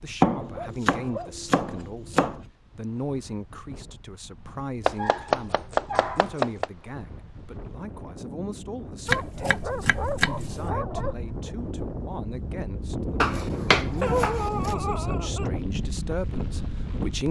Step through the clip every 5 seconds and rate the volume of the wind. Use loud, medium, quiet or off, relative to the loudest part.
quiet, medium, loud, loud.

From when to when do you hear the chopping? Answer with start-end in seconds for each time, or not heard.
0.2-2.4, 4.8-6.7, 9.1-10.6, 13.2-14.8.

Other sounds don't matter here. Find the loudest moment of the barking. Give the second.
14 s.